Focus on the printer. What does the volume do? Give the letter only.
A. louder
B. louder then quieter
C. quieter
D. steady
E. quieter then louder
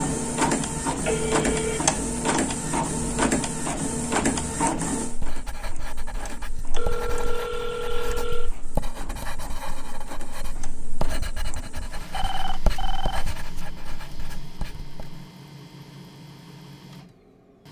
C.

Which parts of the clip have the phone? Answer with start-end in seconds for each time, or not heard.
1.0-1.8, 6.8-8.5, 12.1-13.2.